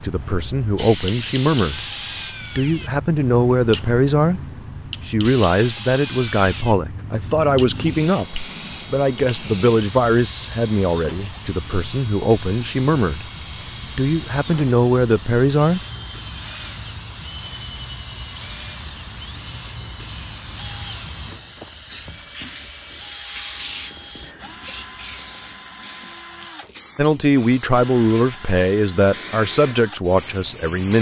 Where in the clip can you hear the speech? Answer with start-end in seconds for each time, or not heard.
0.0-1.8, 2.5-4.4, 5.0-13.2, 13.9-15.8, 26.9-30.9.